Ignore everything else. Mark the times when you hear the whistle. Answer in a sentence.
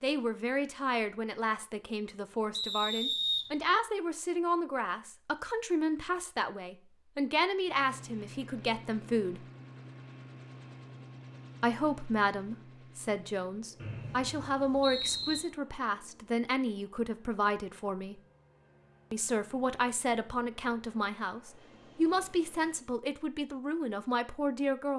The whistle can be heard from 2.5 to 3.5 s and from 13.8 to 15.4 s.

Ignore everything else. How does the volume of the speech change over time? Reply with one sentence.
The volume of the speech stays about the same.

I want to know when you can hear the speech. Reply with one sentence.
You can hear the speech from 0.0 to 9.4 s, from 11.6 to 18.2 s and from 19.1 to 24.9 s.